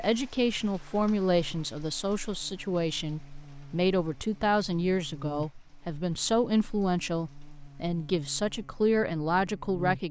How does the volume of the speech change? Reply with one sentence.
The loudness of the speech stays about the same.